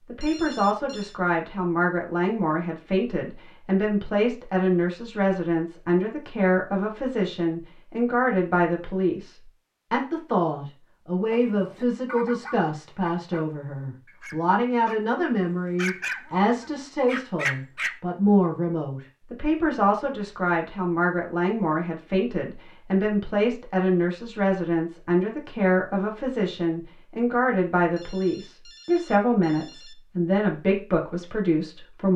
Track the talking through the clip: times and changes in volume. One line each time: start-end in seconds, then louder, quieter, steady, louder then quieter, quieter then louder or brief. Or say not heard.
0.1-32.1 steady.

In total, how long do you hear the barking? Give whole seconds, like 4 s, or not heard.
6 s.